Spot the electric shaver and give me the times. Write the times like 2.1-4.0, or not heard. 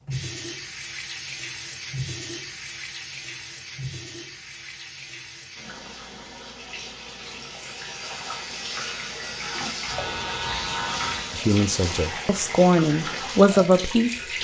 7.5-11.4.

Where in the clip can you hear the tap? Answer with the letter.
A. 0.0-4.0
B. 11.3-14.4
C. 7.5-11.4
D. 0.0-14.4
D.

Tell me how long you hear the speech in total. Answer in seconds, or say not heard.
3 s.